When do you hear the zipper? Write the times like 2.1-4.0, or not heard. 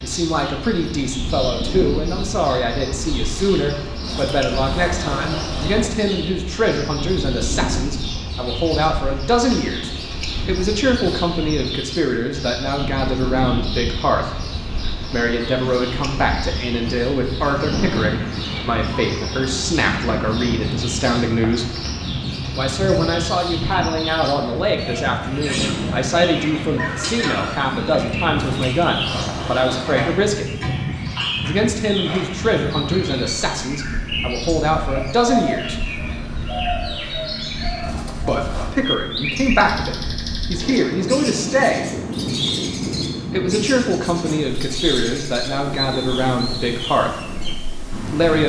4.0-6.0, 28.4-29.9, 37.8-38.8.